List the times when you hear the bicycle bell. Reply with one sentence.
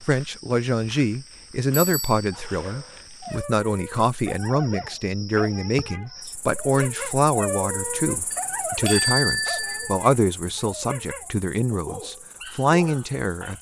The bicycle bell can be heard from 1.8 to 2.2 s and from 8.3 to 10.0 s.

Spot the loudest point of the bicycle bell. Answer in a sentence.
The volume of the bicycle bell peaks at 9 seconds.